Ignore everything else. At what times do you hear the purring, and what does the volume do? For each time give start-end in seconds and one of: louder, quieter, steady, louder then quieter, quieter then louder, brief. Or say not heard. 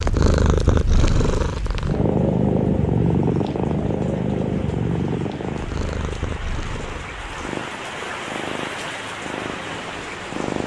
0.0-10.6 quieter.